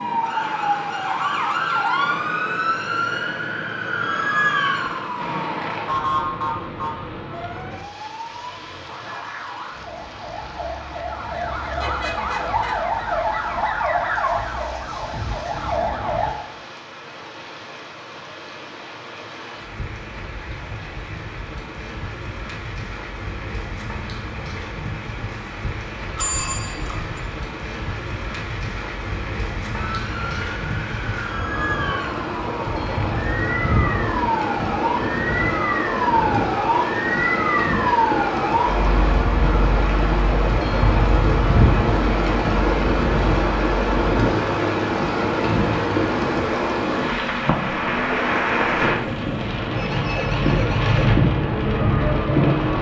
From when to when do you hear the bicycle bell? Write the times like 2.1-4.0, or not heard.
26.1-27.2.